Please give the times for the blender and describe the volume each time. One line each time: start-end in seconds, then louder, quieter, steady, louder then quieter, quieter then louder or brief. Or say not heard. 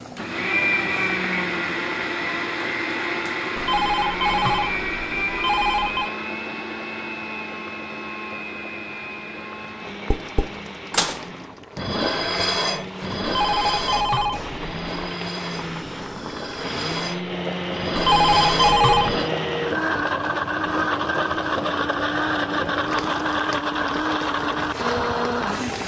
0.0-25.8 quieter then louder.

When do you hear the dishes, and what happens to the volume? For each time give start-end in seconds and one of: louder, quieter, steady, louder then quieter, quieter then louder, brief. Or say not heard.
10.1-19.3 quieter then louder.